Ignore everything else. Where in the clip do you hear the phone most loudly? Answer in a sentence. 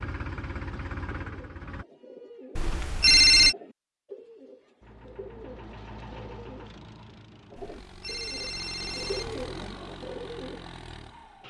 The loudest moment of the phone is at 3 seconds.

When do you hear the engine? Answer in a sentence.
The engine can be heard from 0.0 to 1.9 s and from 4.8 to 11.4 s.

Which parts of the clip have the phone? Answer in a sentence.
The phone can be heard from 2.5 to 3.5 s and from 7.6 to 9.4 s.